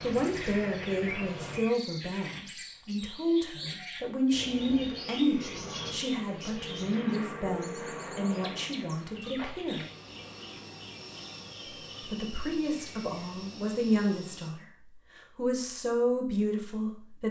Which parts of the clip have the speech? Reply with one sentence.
The speech can be heard from 0.0 to 9.8 s, from 12.0 to 14.7 s and from 15.3 to 17.2 s.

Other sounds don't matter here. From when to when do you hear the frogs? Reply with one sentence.
The frogs can't be heard in this clip.